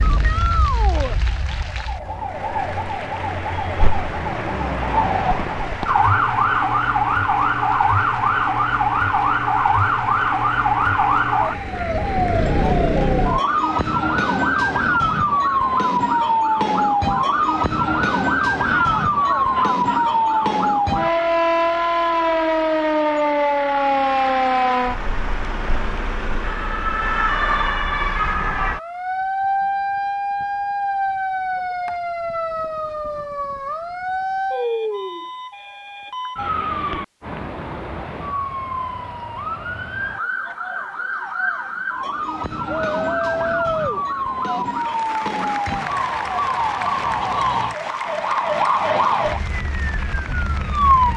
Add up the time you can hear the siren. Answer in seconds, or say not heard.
51 s.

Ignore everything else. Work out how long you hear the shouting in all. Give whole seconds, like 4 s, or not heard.
5 s.